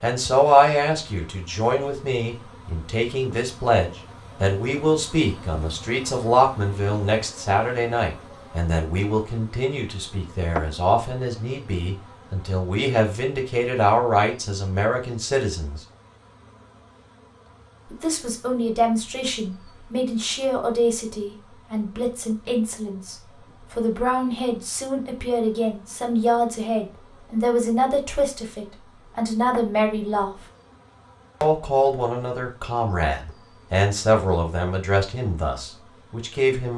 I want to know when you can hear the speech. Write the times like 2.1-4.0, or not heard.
0.0-15.8, 17.9-30.4, 31.4-36.7.